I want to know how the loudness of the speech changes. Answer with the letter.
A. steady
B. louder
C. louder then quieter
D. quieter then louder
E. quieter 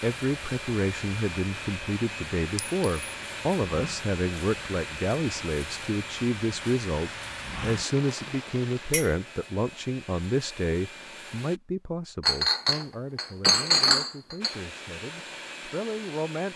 E.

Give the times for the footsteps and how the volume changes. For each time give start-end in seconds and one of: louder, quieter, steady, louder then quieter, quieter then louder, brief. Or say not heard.
not heard.